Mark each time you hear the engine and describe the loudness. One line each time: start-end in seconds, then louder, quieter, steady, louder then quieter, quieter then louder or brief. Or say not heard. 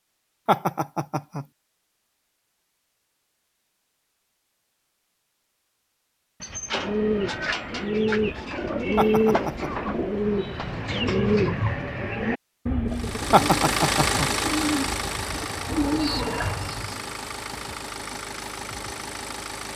12.8-19.7 quieter.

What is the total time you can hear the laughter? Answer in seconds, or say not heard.
3 s.